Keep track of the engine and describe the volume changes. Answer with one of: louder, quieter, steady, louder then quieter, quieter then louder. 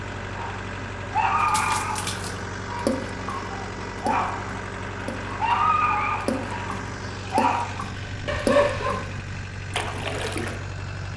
steady.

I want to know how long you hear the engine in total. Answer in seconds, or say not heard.
11 s.